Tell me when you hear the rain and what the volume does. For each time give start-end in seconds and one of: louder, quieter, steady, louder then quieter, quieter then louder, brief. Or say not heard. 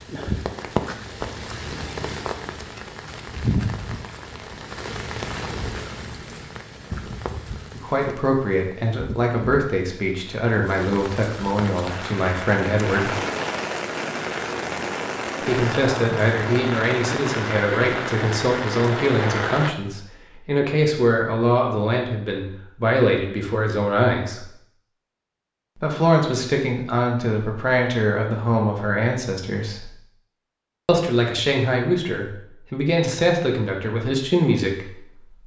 0.0-19.8 quieter then louder.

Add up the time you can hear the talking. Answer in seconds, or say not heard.
23 s.